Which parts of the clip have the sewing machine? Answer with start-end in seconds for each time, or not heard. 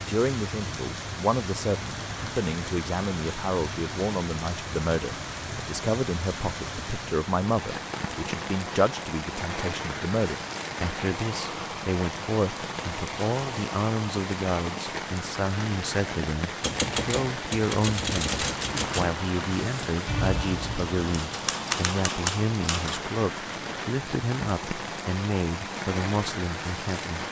not heard.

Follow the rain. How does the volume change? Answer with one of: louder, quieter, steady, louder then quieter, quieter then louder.
steady.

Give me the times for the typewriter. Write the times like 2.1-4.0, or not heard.
16.6-23.1.